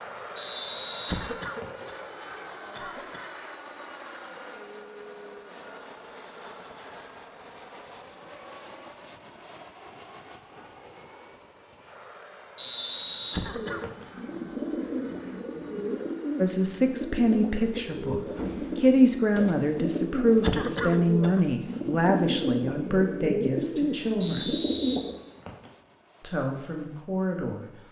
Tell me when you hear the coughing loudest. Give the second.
21 s.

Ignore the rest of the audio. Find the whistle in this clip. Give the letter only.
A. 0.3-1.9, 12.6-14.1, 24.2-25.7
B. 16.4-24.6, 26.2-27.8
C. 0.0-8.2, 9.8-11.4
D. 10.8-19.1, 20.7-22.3
A.